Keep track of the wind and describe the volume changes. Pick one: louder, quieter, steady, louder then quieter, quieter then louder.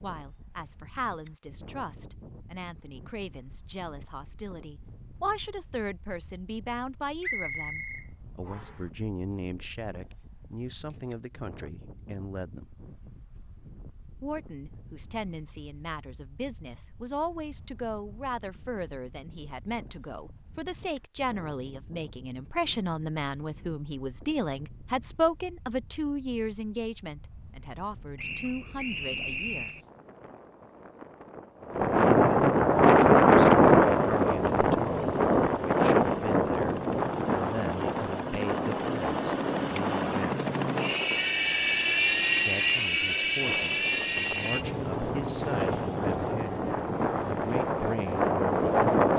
louder then quieter.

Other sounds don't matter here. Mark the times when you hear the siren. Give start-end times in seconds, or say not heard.
not heard.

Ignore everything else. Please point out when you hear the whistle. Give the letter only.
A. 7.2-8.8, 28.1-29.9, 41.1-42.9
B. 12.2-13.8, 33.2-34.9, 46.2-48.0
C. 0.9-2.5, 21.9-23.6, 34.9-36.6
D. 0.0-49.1
A.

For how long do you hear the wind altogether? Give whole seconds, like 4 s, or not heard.
49 s.